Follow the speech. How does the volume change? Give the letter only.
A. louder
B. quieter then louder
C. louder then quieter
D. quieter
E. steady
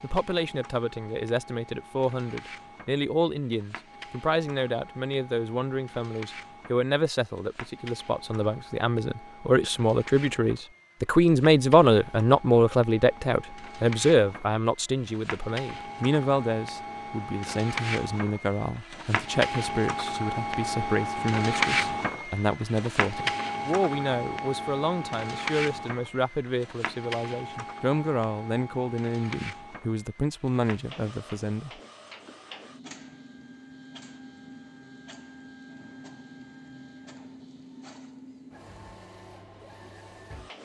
C.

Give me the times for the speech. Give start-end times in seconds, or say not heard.
0.0-31.7.